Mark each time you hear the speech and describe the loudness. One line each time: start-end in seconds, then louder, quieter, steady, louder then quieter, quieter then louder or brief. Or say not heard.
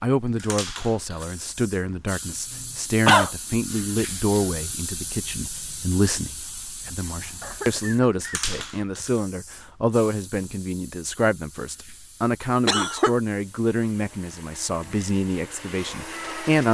0.0-16.6 steady.